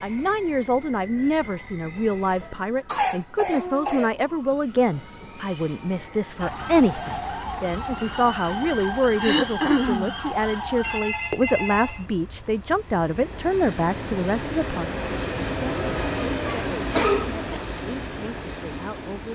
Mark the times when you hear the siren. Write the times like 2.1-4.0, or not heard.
6.3-11.0.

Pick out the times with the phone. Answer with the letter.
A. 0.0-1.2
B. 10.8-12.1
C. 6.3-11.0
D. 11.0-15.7
B.